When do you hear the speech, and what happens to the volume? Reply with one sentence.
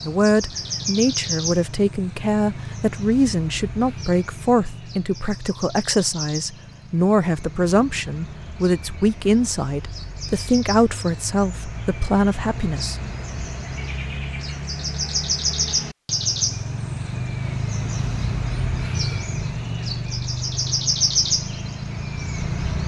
The speech can be heard from 0.0 to 12.9 s, at a steady volume.